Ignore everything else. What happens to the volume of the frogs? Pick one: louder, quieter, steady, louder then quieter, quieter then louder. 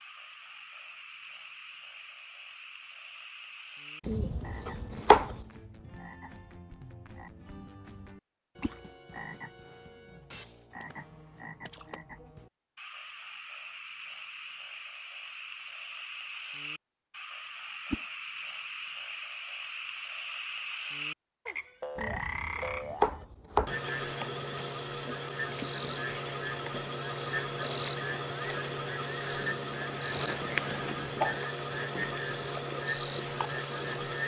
louder.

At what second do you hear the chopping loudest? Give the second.
5 s.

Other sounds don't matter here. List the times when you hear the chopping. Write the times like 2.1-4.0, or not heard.
4.0-5.3, 21.9-23.8.